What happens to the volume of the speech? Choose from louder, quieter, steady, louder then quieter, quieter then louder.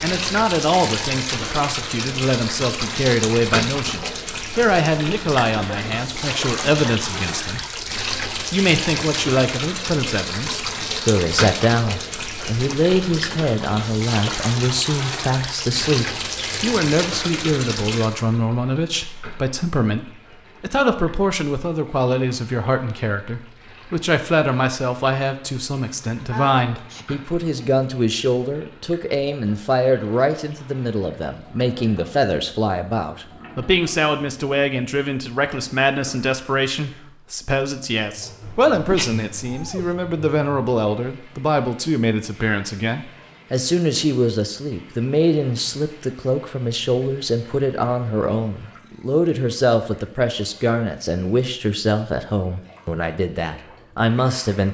steady.